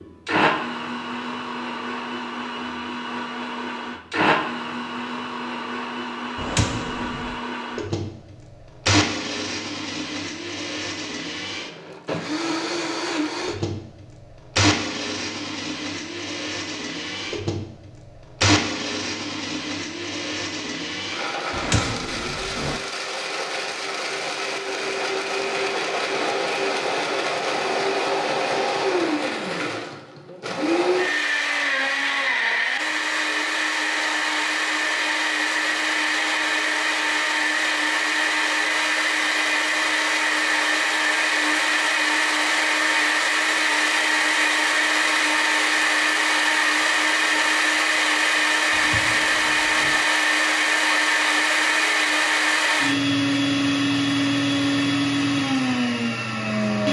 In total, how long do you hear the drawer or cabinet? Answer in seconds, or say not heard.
4 s.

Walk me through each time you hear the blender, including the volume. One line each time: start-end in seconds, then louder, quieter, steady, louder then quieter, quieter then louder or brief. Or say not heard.
0.0-56.8 louder.